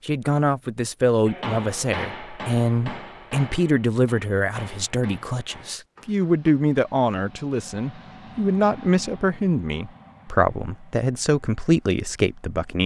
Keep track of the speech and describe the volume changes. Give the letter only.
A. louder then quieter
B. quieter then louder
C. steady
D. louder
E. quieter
C.